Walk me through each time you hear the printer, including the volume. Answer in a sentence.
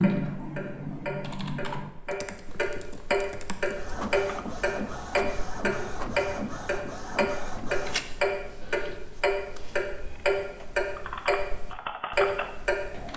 You can hear the printer from 3.6 to 10.8 s, getting quieter.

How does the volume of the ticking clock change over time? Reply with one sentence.
The volume of the ticking clock goes up.